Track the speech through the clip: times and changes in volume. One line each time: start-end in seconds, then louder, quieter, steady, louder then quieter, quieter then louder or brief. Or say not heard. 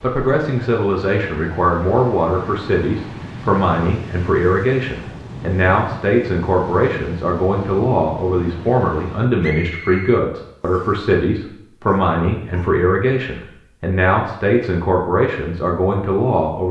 0.0-16.6 steady.